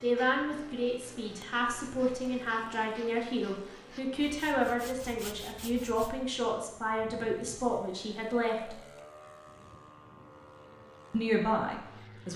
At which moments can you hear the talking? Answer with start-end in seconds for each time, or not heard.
0.0-8.8, 11.1-12.3.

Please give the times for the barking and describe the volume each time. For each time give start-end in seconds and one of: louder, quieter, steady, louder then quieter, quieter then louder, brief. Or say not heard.
not heard.